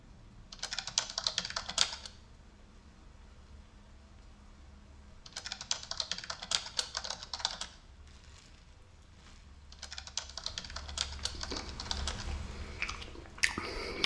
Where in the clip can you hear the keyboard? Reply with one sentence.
The keyboard can be heard from 0.5 to 2.1 s, from 5.2 to 7.7 s and from 9.7 to 12.2 s.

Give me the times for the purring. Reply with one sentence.
The purring can't be heard in this clip.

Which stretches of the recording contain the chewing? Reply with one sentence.
You can hear the chewing from 11.3 to 14.0 s.